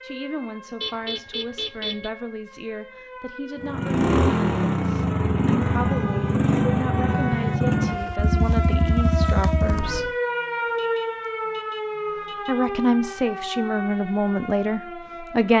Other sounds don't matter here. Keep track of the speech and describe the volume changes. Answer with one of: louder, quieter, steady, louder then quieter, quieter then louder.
louder.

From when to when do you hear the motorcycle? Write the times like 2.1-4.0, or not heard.
3.6-10.1.